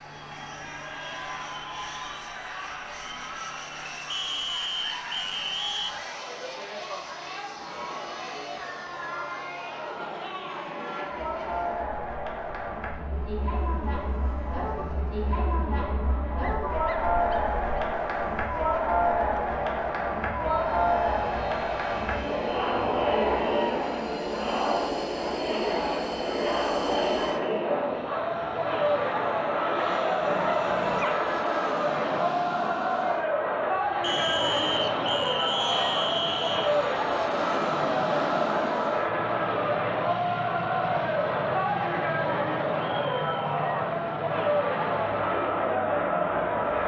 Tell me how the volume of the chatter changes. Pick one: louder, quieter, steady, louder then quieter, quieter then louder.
louder.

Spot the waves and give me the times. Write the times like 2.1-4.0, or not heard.
not heard.